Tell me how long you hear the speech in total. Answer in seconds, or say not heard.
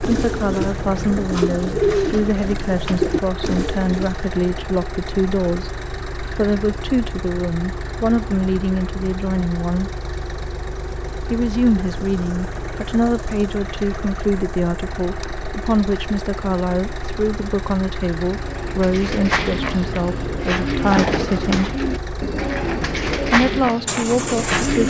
22 s.